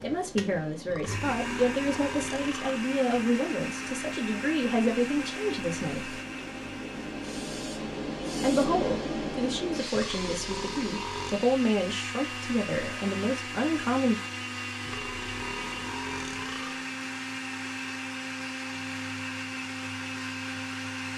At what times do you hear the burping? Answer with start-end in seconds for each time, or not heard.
0.8-2.8, 9.9-11.4, 14.8-16.9.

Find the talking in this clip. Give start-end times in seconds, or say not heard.
0.0-6.2, 8.4-14.2.